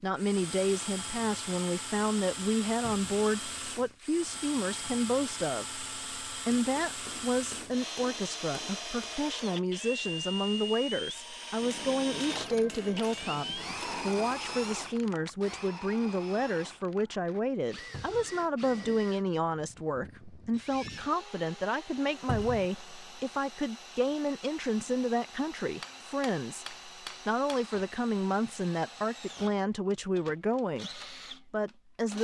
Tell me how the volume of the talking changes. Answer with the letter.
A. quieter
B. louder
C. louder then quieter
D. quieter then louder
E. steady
E.